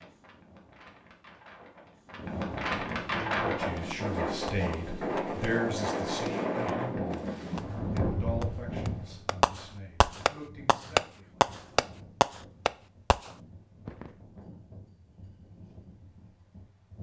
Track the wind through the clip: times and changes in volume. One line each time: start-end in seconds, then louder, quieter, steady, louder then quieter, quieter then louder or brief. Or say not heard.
0.0-16.9 quieter.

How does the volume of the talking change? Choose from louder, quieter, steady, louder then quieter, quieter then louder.
louder then quieter.